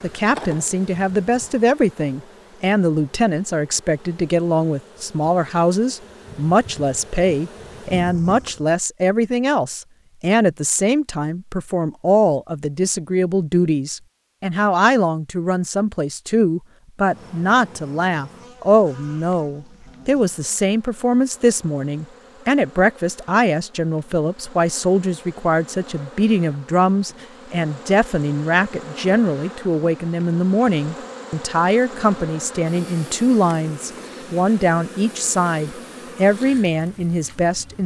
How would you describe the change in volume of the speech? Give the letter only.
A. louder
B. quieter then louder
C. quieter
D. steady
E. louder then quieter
D.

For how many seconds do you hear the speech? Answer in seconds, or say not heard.
38 s.